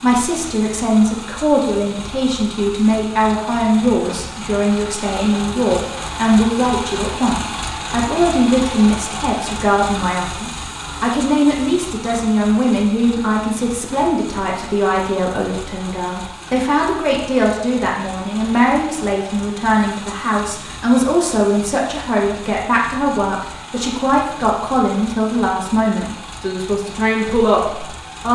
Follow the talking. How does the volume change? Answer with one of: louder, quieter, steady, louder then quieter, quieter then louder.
steady.